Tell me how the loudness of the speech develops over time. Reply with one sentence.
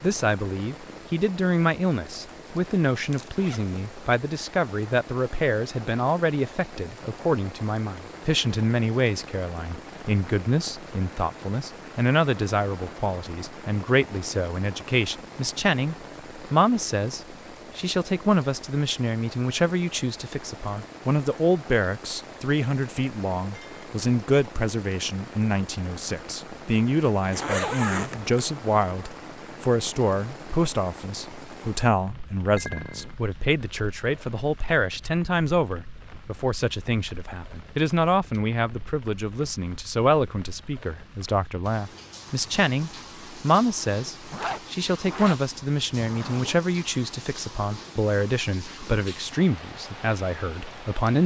The volume of the speech stays about the same.